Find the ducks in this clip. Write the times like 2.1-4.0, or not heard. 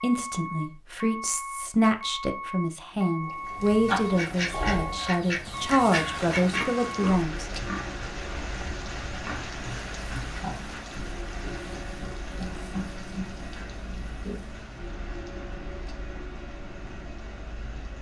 3.9-6.8.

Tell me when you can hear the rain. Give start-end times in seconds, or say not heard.
6.1-17.9.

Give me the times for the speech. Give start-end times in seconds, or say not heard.
0.0-7.5.